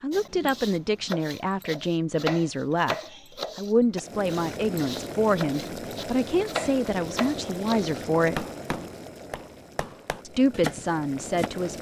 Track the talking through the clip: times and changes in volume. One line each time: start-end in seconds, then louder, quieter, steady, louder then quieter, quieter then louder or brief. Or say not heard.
0.0-3.0 brief
3.5-8.4 steady
10.2-11.7 brief.